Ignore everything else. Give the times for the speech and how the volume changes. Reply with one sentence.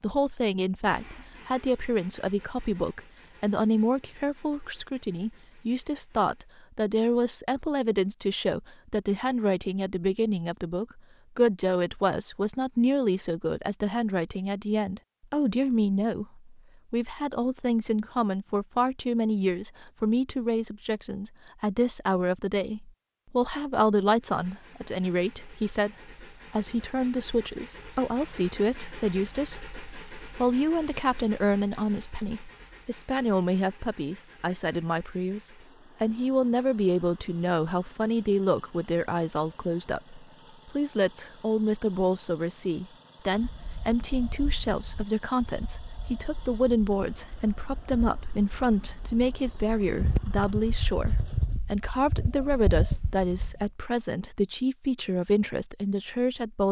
The speech can be heard from 0.0 to 56.6 s, at a steady volume.